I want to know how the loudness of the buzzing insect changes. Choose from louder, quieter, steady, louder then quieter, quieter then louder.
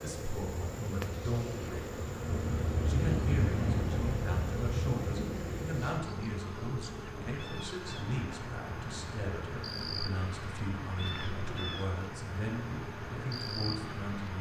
steady.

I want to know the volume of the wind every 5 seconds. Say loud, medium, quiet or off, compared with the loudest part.
loud, medium, medium.